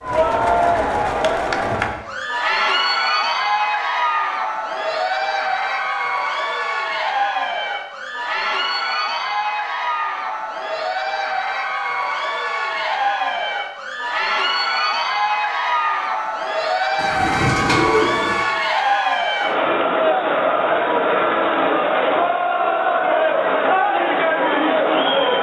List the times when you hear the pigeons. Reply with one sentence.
You can hear the pigeons from 16.9 to 18.4 s.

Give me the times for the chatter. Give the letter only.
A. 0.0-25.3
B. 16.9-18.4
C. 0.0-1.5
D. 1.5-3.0
A.